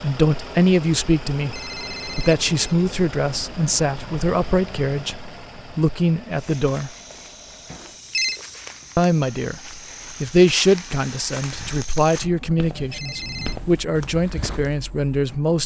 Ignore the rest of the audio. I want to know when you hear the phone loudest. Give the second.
8 s.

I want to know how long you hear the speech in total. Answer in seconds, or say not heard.
13 s.